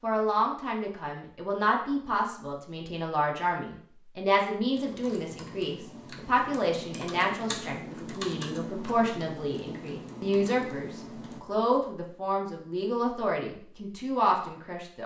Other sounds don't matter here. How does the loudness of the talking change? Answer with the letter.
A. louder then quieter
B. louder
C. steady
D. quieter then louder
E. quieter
C.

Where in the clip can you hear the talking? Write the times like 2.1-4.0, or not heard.
0.0-15.0.